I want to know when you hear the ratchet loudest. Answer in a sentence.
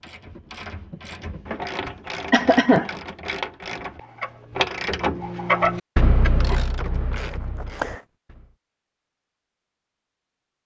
The volume of the ratchet peaks at 6 seconds.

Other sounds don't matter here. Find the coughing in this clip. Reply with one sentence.
You can hear the coughing from 1.8 to 2.9 s and from 7.2 to 8.0 s.